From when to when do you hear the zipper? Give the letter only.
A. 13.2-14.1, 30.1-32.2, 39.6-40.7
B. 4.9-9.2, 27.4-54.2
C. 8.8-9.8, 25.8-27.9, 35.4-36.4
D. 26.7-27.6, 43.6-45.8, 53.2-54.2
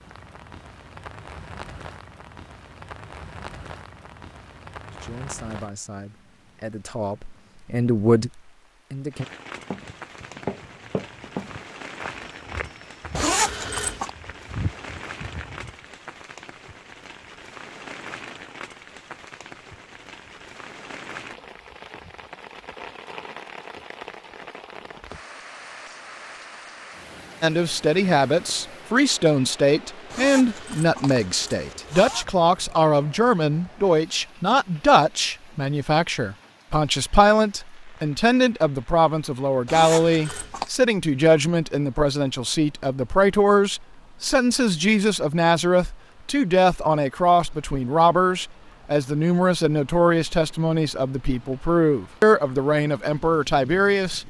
A.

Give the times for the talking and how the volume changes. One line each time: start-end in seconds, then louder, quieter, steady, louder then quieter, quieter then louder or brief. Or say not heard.
4.9-9.2 louder then quieter
27.4-54.2 steady.